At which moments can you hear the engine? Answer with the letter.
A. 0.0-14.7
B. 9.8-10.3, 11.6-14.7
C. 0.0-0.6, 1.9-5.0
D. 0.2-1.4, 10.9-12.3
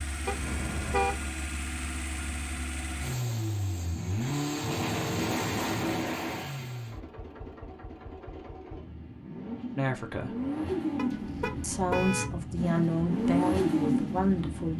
A.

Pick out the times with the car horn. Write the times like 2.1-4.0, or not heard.
0.2-1.4, 10.9-12.3.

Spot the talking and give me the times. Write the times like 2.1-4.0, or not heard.
9.8-10.3, 11.6-14.7.